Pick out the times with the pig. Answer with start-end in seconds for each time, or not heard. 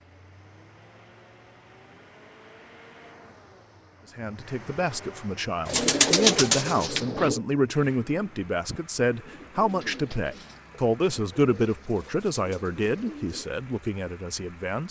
not heard.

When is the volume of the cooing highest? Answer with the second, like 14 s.
6 s.